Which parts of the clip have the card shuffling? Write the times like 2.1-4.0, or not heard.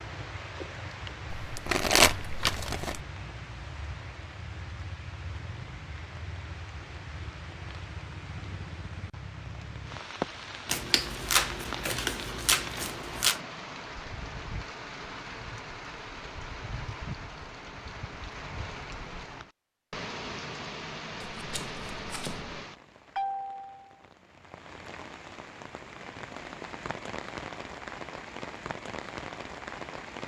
1.3-3.0, 10.7-13.4, 21.2-22.6.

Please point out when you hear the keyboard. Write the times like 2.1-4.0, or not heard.
not heard.